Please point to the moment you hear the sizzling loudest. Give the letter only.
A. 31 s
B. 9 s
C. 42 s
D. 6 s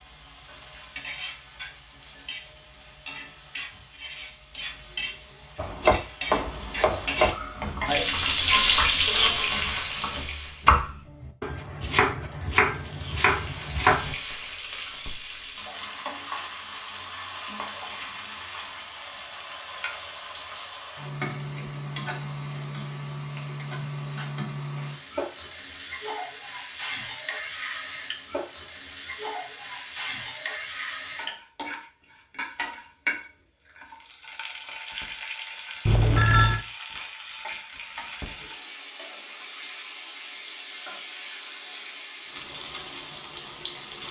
B.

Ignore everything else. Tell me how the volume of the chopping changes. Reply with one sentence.
The volume of the chopping goes down, then up.